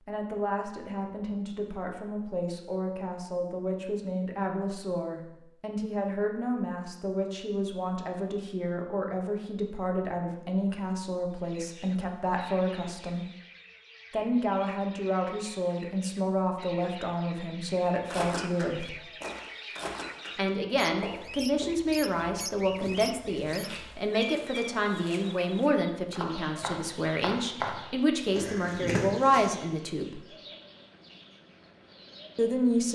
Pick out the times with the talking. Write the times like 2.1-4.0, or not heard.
0.0-13.2, 14.1-18.9, 20.4-30.2, 32.4-32.9.